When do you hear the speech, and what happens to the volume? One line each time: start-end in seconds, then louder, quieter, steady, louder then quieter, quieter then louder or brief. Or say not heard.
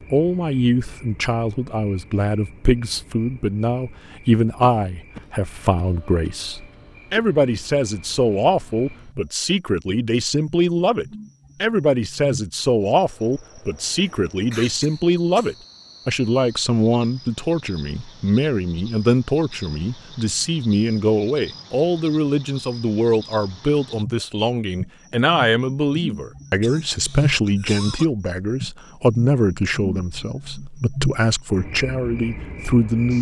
0.1-33.1 steady.